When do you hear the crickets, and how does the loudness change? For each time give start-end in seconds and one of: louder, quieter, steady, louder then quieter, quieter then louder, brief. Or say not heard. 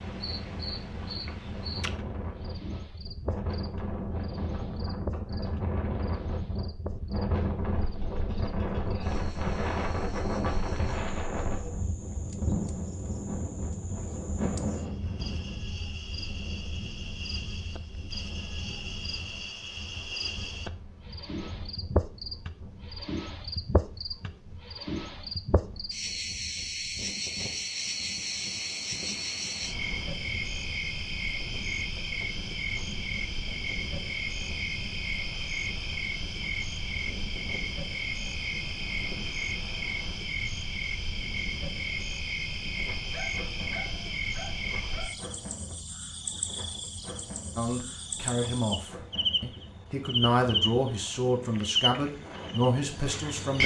0.0-53.6 louder.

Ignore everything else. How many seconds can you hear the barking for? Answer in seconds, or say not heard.
2 s.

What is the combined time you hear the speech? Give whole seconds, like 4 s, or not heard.
6 s.